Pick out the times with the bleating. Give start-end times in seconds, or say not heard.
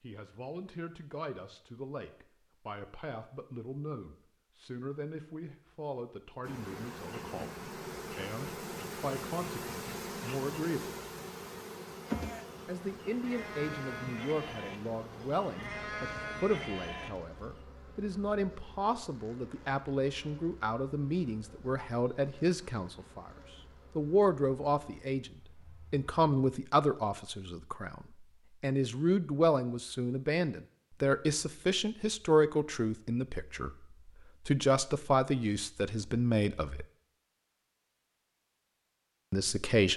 12.1-17.6.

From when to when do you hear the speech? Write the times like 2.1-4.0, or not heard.
0.0-10.9, 12.7-23.3, 23.9-36.9, 39.3-39.9.